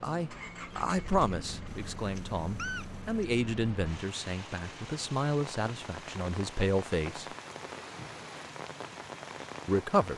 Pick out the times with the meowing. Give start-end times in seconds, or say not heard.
1.6-3.2.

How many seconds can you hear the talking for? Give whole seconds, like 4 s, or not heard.
8 s.